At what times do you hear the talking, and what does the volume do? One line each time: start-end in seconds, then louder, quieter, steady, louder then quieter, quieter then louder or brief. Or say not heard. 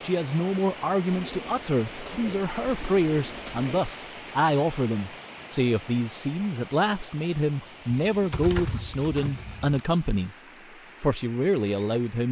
0.0-10.3 steady
11.0-12.2 brief.